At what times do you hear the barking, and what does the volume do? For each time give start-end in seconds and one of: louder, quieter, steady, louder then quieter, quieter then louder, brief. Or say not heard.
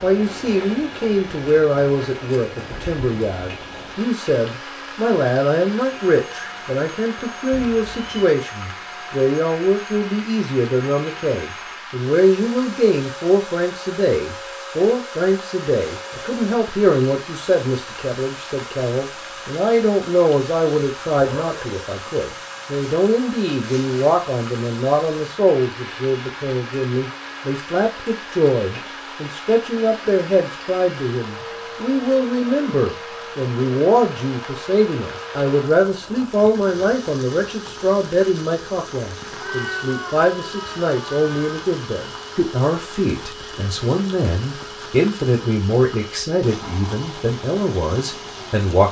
not heard.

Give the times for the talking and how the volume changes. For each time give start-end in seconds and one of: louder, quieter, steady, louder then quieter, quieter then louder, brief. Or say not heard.
0.0-48.8 steady.